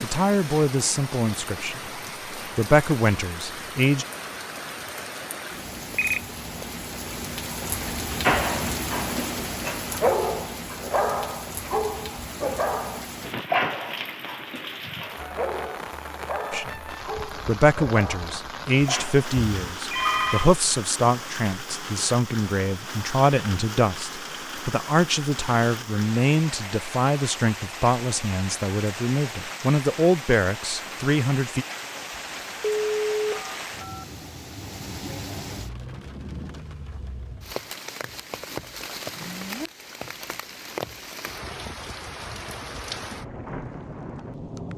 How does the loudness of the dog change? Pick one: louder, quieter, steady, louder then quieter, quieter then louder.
quieter.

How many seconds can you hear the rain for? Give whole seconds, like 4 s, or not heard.
45 s.